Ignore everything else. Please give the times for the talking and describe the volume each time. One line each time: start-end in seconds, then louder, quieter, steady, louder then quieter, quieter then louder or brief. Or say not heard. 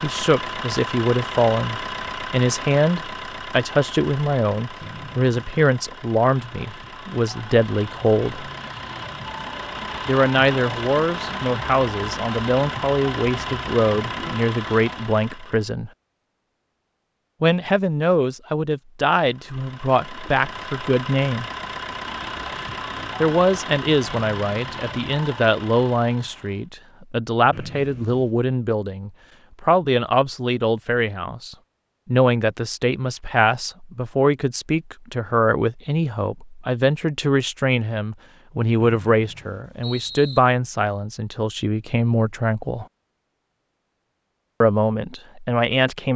0.0-8.5 steady
10.1-15.9 steady
17.4-21.4 steady
23.2-42.9 steady
44.6-46.1 brief.